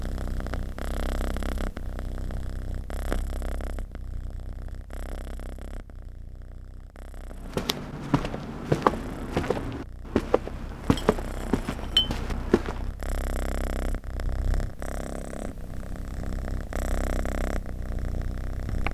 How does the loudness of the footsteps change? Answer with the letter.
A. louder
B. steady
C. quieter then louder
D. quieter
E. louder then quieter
D.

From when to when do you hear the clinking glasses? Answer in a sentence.
The clinking glasses can be heard from 10.9 to 12.1 s.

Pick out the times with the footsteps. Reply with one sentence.
The footsteps can be heard from 7.5 to 12.8 s.